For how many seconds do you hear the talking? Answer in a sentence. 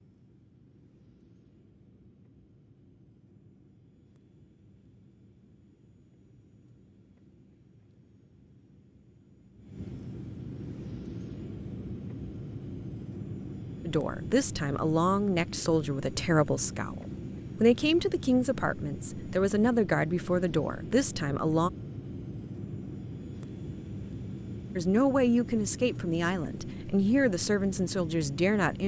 The talking can be heard for 12 seconds in total.